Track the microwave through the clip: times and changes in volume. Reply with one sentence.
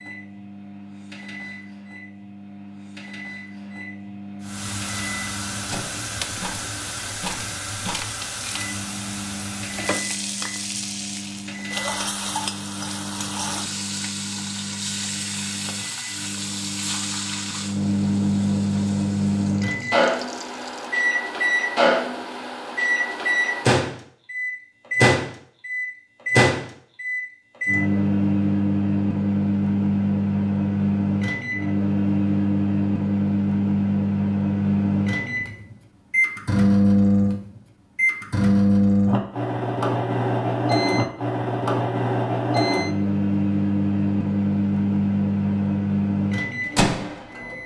The microwave can be heard from 0.0 to 47.6 s, getting louder.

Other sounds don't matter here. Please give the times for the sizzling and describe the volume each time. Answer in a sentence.
You can hear the sizzling from 4.4 to 21.0 s, getting quieter.